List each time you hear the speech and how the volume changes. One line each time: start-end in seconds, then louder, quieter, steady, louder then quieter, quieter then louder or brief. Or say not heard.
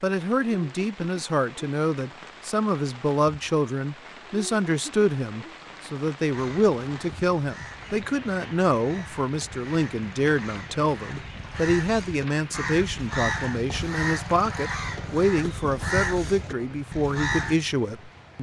0.0-18.3 steady.